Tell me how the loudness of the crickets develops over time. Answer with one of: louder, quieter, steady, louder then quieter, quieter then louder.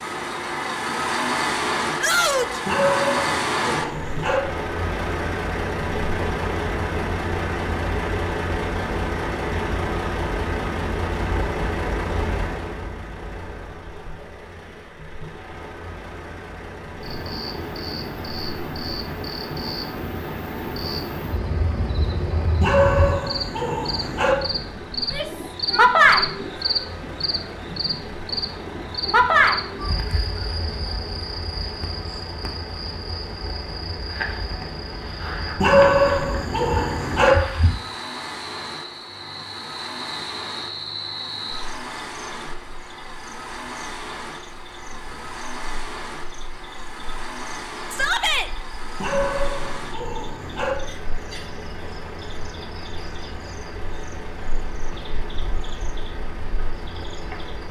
louder then quieter.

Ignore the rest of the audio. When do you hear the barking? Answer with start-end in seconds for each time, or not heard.
2.6-4.4, 22.6-24.4, 35.6-37.4, 49.0-50.8.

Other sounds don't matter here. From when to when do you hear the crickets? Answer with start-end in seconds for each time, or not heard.
17.0-57.6.